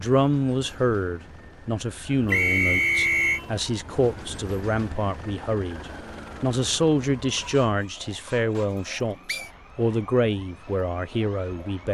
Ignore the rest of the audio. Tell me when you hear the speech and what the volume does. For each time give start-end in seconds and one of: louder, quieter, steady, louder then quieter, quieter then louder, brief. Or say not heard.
0.0-11.8 steady.